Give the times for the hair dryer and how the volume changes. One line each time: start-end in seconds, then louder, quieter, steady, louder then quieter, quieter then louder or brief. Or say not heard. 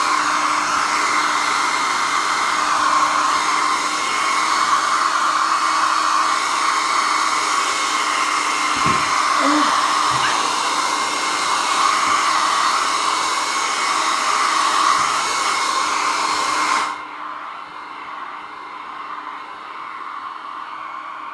0.0-21.2 quieter.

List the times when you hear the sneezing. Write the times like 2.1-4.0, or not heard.
8.8-10.5.